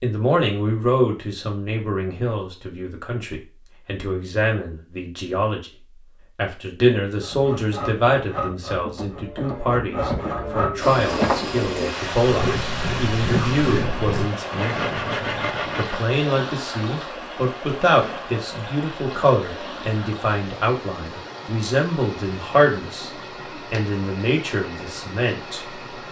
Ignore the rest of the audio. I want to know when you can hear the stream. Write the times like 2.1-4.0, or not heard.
10.8-26.0.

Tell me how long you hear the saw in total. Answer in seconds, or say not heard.
9 s.